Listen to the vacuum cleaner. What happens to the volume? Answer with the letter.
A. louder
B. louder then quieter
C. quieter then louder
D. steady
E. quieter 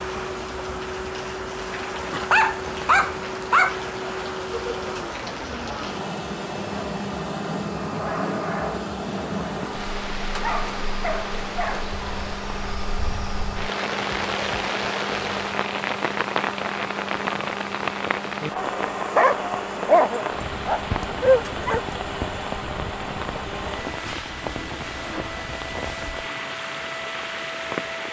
D.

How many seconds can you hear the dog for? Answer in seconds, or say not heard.
6 s.